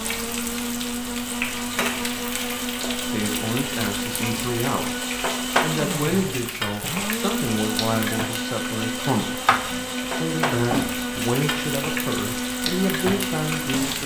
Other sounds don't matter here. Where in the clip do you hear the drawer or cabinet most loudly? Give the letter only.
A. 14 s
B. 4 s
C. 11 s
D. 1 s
C.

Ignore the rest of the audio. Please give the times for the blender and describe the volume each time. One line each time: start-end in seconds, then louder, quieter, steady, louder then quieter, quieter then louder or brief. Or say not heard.
0.0-14.0 steady.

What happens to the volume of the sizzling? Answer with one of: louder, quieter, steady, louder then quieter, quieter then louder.
steady.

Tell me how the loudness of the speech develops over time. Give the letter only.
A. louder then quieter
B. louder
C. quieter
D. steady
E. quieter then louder
D.